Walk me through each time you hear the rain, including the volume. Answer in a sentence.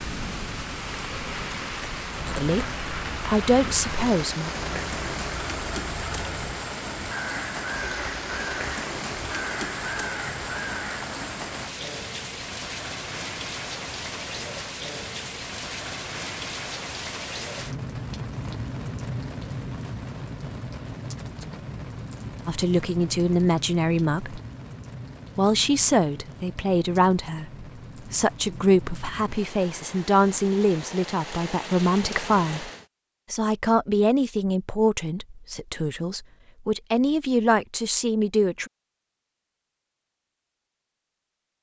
You can hear the rain from 0.0 to 32.9 s, getting quieter.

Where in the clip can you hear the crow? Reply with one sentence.
You can hear the crow from 2.1 to 11.1 s.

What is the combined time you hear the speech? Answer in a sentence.
You can hear the speech for 17 seconds altogether.